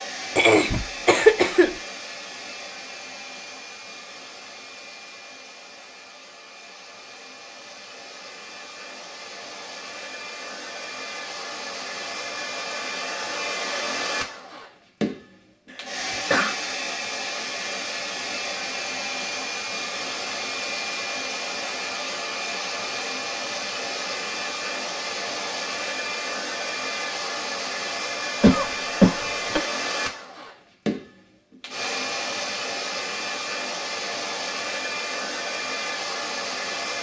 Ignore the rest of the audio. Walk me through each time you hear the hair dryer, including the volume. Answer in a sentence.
The hair dryer can be heard from 0.0 to 36.9 s, getting louder.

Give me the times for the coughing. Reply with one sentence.
You can hear the coughing from 0.3 to 1.7 s, from 16.1 to 16.6 s and from 28.4 to 29.6 s.